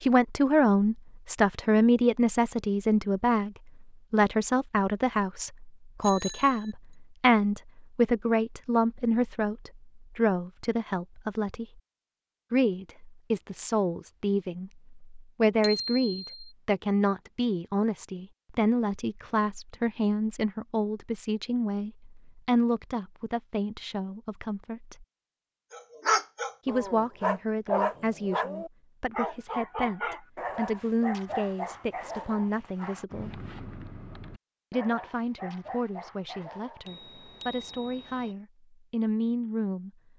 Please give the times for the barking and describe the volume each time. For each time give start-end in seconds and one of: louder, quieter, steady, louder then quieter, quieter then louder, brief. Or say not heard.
25.7-36.9 quieter.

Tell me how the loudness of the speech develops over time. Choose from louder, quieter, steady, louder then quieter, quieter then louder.
quieter.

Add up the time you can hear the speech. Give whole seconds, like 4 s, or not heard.
36 s.